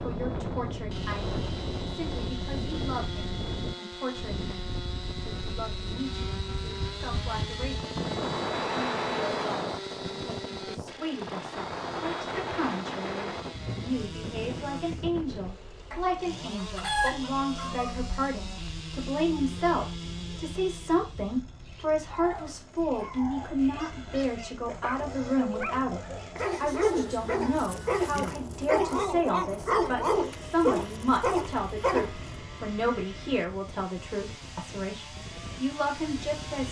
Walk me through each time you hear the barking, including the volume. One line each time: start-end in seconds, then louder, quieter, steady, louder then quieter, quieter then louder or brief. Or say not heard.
21.9-32.3 louder.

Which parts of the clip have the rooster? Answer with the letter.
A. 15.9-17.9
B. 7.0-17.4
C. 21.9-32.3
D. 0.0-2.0
A.